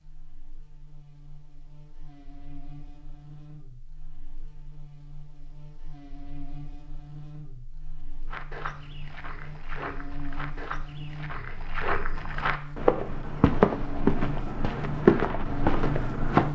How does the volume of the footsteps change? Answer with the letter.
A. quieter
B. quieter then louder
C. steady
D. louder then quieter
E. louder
E.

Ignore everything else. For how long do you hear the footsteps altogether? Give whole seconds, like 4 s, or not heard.
8 s.